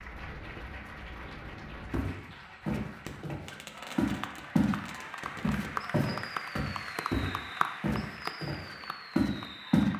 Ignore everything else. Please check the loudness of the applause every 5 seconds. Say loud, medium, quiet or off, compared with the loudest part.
medium, loud.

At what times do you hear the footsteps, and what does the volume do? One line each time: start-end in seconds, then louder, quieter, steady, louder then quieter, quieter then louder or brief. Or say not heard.
1.9-4.8 brief
5.4-9.9 quieter then louder.